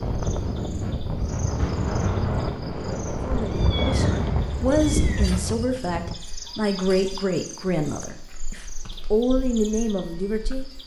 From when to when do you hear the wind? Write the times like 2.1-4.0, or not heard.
0.0-6.2.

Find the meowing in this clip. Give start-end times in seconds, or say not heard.
3.3-5.5.